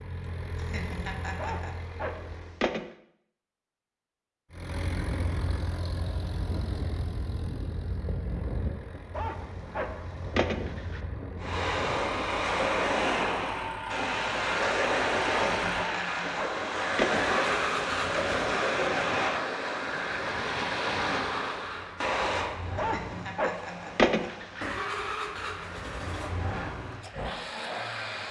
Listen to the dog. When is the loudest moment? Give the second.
24 s.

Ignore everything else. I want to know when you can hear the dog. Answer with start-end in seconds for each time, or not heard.
1.4-2.9, 9.1-11.0, 15.8-17.4, 22.8-24.6.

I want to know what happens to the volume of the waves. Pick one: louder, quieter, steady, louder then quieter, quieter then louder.
quieter.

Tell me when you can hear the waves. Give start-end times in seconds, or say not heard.
11.4-28.2.